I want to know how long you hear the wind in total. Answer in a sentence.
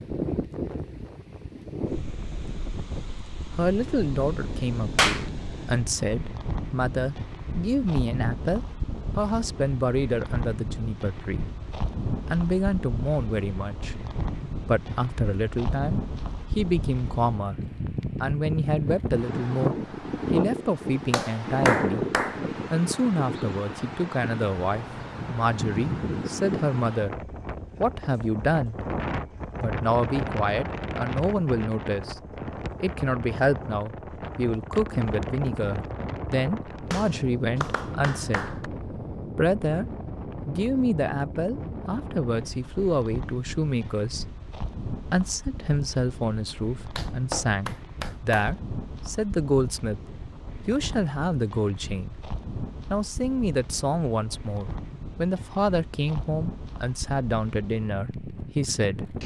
The wind can be heard for 59 seconds in total.